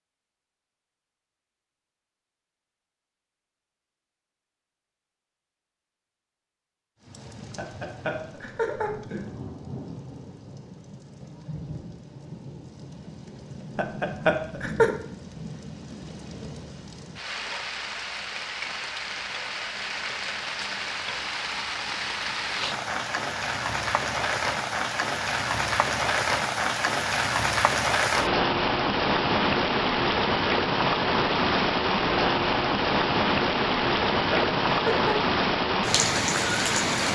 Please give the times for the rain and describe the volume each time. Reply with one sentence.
The rain can be heard from 7.0 to 37.1 s, getting louder.